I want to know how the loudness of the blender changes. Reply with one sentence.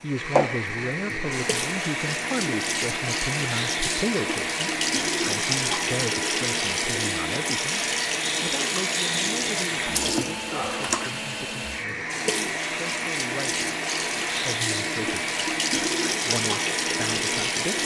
The volume of the blender stays about the same.